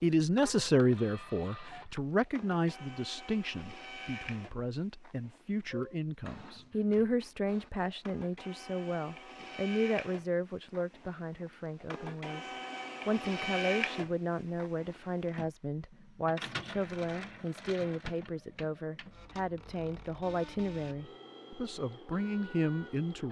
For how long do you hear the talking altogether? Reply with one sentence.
You can hear the talking for 23 seconds altogether.